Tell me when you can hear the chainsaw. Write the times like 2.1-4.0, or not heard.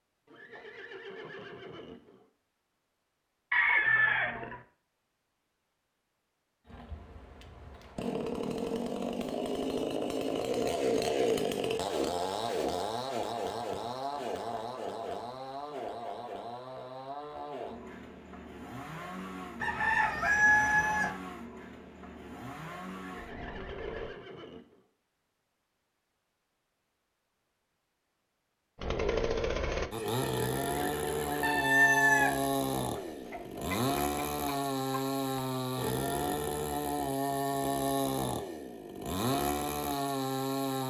6.7-24.1, 28.8-40.8.